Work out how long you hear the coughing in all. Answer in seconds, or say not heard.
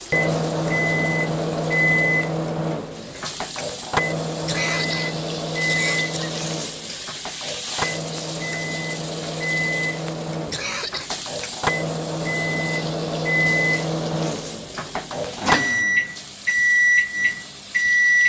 3 s.